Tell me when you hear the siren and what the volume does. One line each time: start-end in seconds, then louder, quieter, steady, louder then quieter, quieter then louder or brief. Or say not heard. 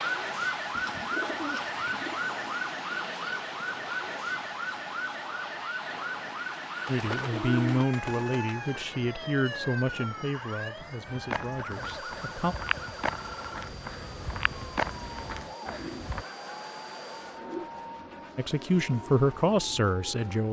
0.0-20.2 quieter.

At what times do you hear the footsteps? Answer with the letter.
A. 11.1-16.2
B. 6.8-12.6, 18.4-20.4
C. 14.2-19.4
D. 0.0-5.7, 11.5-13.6
A.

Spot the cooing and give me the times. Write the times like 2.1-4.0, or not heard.
0.7-2.2, 6.8-8.8, 15.6-17.7.